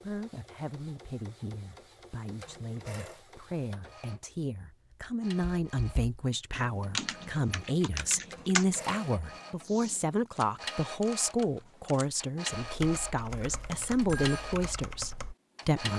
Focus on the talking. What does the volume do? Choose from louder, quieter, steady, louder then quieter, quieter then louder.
louder.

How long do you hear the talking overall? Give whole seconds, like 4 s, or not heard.
16 s.